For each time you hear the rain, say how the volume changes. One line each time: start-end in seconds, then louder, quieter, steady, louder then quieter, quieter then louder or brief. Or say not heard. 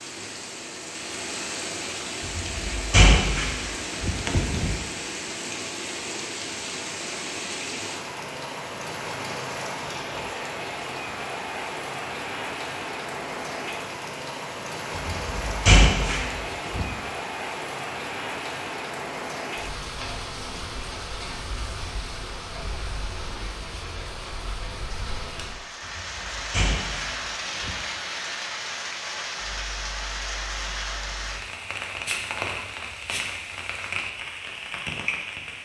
0.0-35.6 steady.